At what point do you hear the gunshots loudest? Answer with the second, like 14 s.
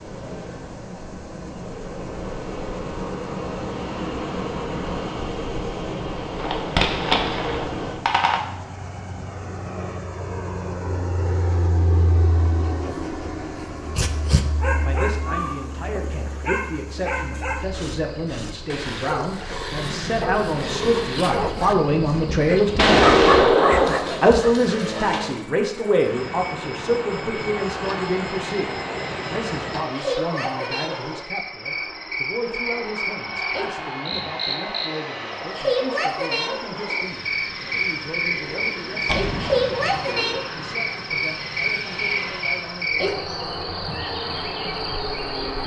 23 s.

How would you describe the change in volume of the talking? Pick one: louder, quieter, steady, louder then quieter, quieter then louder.
louder then quieter.